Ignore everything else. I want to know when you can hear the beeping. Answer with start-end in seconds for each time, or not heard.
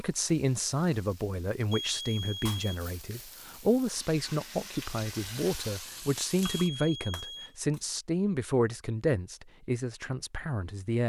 1.7-2.8, 6.6-7.5.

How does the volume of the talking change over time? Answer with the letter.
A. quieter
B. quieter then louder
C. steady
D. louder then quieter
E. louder
C.